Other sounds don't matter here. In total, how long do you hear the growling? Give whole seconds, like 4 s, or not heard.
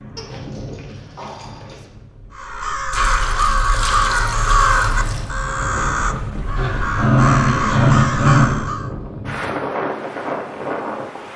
4 s.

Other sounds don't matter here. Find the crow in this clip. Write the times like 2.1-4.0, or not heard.
2.4-8.9.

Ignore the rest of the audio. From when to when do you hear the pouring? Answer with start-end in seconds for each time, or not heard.
2.9-5.3.